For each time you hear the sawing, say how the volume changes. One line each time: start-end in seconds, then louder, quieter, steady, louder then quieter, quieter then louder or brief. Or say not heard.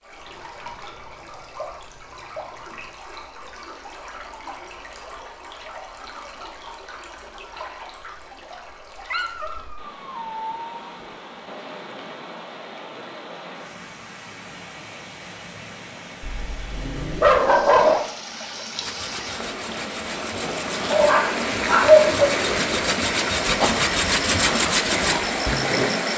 18.8-26.0 louder.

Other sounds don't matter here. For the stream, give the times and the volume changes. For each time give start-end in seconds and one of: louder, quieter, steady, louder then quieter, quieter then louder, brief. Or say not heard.
0.0-26.1 louder.